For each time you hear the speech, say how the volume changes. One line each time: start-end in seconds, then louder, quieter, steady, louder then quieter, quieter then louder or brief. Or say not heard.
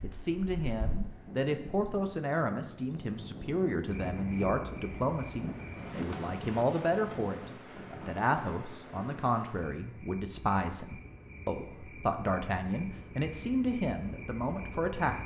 0.0-15.2 steady.